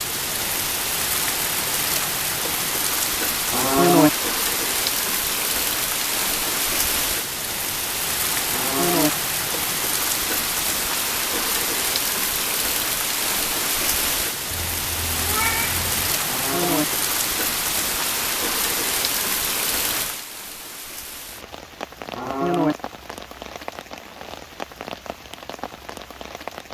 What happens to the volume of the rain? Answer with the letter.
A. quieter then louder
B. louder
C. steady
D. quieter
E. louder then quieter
D.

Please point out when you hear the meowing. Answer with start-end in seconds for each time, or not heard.
14.5-16.1.